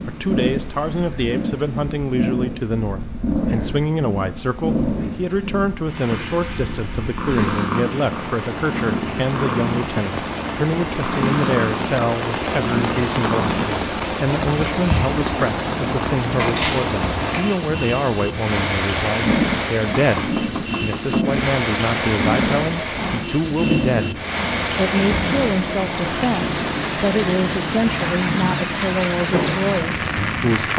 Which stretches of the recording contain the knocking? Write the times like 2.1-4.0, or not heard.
19.9-21.4.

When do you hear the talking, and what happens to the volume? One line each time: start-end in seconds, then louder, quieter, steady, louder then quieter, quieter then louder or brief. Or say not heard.
0.1-30.7 steady.